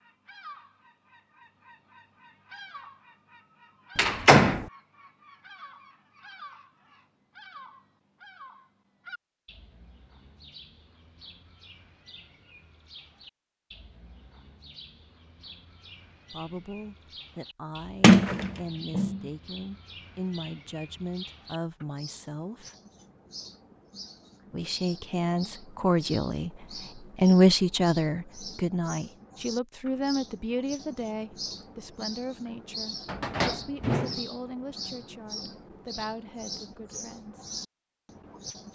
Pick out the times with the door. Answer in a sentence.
You can hear the door from 4.0 to 4.7 s, from 18.0 to 19.2 s and from 33.0 to 34.2 s.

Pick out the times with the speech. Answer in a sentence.
The speech can be heard from 16.3 to 22.7 s, from 24.5 to 26.5 s and from 27.1 to 37.4 s.